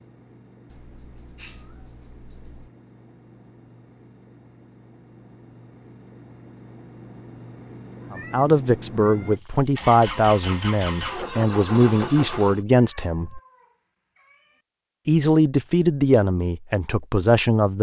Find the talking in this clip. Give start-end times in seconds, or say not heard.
8.1-13.4, 15.1-17.7.